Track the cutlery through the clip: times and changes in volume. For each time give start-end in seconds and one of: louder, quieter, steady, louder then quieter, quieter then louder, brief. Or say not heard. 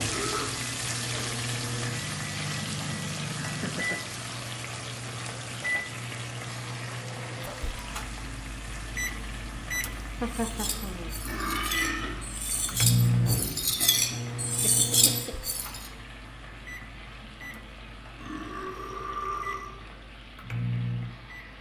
10.2-15.9 louder.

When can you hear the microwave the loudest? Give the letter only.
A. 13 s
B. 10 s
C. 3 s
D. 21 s
A.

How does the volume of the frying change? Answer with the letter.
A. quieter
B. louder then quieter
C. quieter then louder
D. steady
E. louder
A.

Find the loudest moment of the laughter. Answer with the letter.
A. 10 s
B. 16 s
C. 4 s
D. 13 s
A.